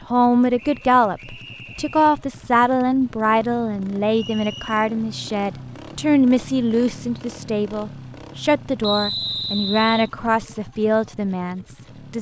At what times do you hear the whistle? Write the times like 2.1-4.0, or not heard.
0.6-2.0, 4.1-5.0, 8.8-10.1.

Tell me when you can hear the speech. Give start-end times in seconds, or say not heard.
0.1-12.1.